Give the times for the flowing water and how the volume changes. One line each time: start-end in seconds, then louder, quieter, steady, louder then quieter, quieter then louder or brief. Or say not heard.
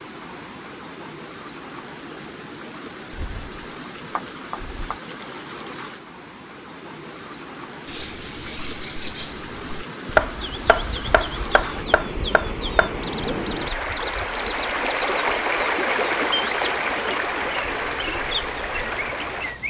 0.0-19.6 louder.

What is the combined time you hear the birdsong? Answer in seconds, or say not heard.
12 s.